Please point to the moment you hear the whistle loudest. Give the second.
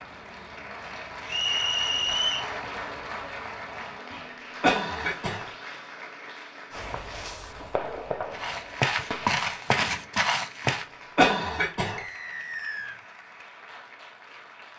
2 s.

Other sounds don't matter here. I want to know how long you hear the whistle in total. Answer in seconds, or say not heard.
2 s.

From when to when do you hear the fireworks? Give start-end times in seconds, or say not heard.
6.7-10.1.